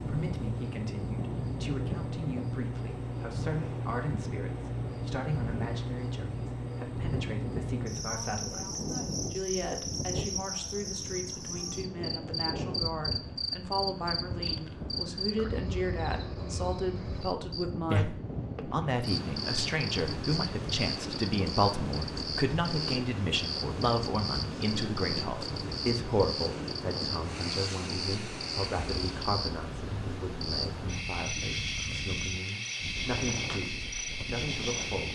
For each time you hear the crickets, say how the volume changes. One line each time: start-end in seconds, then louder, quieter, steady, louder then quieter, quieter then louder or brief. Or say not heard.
0.0-35.1 steady.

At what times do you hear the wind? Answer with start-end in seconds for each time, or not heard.
0.0-35.1.